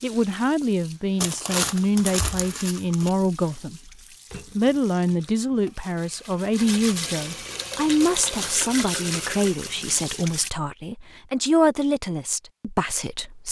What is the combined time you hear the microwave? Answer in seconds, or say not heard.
not heard.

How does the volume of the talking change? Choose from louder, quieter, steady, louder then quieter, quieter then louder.
steady.